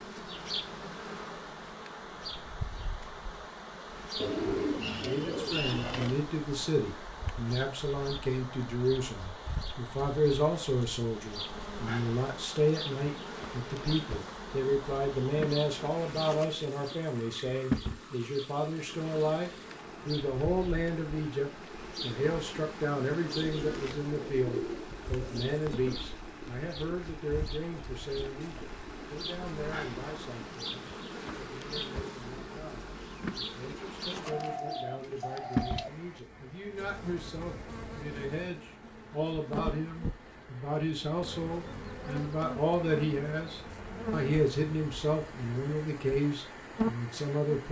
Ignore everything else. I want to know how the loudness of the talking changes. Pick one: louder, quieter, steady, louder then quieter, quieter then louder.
quieter then louder.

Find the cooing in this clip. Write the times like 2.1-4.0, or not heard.
4.2-6.2, 23.1-26.0, 34.2-36.0.